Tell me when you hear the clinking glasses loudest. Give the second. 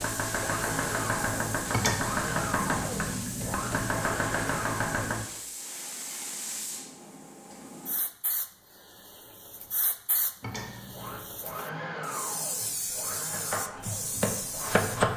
2 s.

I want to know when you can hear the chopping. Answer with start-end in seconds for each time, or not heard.
0.0-5.2, 12.6-15.1.